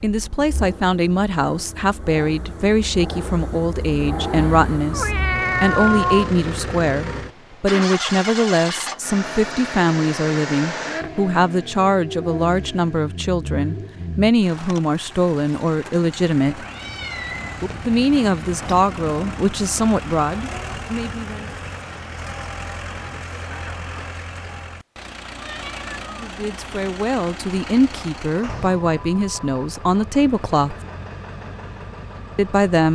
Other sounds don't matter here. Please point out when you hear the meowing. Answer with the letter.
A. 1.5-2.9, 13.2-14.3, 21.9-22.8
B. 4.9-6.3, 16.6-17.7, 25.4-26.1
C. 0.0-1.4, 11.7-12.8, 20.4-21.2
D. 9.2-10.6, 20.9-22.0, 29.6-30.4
B.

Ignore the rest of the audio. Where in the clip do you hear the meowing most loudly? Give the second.
6 s.